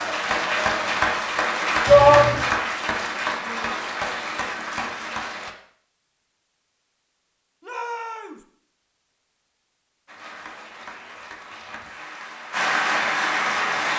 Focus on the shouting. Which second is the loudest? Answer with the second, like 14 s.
2 s.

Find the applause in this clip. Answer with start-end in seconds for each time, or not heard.
0.0-5.5, 10.1-13.9.